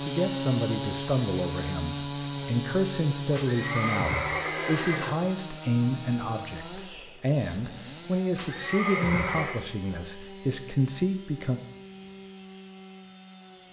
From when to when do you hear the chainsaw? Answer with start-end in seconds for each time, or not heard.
0.0-13.6.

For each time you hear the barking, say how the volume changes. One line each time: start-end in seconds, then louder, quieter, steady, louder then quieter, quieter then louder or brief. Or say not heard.
not heard.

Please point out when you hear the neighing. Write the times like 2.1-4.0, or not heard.
3.3-5.2, 8.3-9.6.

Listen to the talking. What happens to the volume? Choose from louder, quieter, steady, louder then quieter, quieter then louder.
steady.